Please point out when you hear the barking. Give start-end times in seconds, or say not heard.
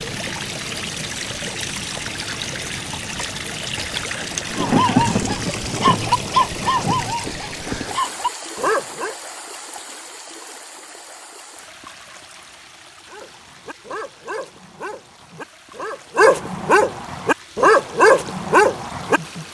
4.5-9.2, 13.1-19.2.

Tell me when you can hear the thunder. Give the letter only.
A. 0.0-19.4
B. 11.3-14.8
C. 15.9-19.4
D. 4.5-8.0
D.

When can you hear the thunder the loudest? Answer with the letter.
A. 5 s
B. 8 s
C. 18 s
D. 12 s
A.